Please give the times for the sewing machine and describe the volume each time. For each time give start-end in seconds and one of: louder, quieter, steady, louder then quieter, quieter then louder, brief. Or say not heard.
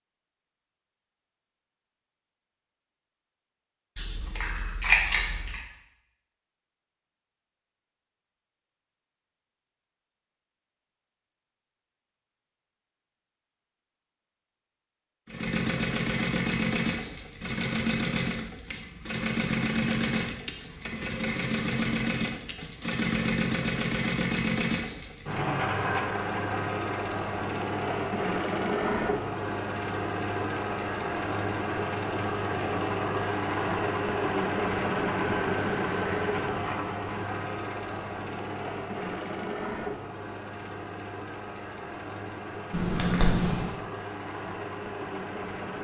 15.2-45.7 quieter.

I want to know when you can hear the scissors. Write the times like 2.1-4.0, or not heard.
4.0-5.6, 42.7-43.8.